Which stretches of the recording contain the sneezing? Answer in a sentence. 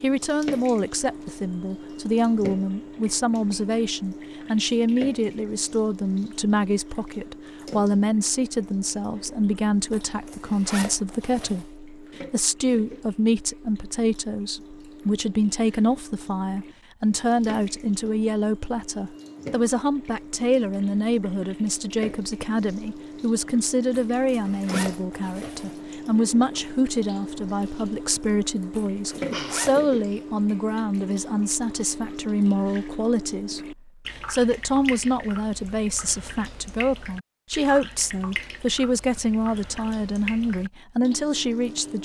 The sneezing can be heard from 28.9 to 30.2 s.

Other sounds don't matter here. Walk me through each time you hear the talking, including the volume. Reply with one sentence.
You can hear the talking from 0.0 to 42.0 s, at a steady volume.